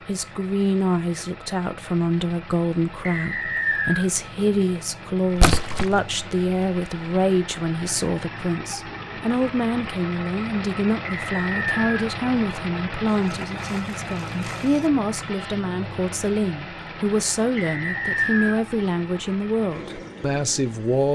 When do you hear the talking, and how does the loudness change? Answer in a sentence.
The talking can be heard from 0.1 to 21.1 s, at a steady volume.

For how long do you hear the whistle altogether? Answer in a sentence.
You can hear the whistle for 3 seconds altogether.